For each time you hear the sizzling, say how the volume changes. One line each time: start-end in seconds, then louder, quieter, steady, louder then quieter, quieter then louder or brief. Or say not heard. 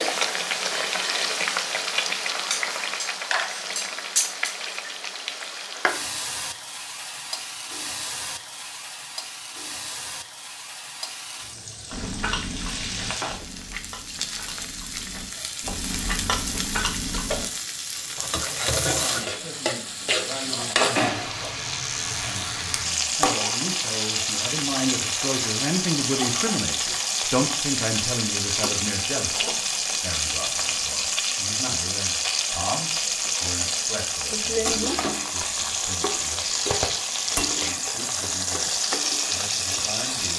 0.0-40.3 quieter then louder.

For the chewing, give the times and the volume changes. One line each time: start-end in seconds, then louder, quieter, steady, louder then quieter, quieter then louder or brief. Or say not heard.
11.9-17.4 quieter then louder.